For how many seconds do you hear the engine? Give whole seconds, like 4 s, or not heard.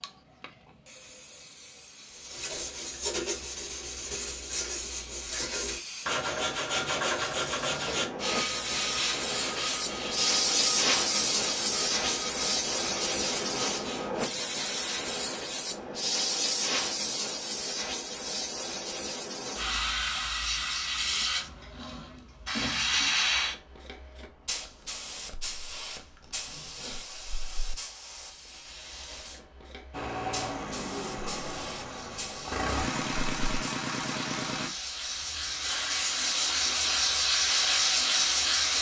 5 s.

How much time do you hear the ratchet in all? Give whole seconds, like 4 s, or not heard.
not heard.